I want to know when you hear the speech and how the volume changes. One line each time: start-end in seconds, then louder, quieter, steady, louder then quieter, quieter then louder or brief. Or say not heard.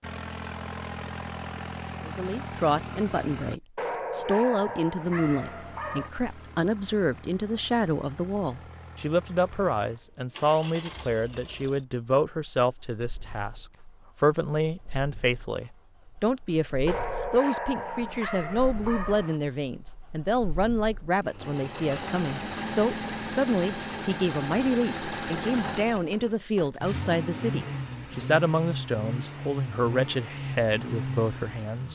2.0-31.8 steady.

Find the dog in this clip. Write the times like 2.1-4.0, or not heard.
3.8-6.1, 16.9-19.4.